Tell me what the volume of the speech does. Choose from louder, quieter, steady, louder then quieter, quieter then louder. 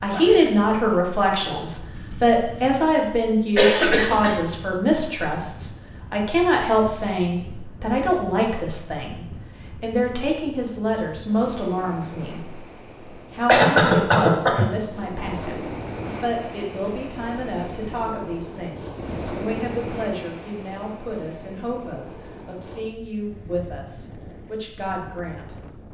quieter.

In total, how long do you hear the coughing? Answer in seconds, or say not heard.
2 s.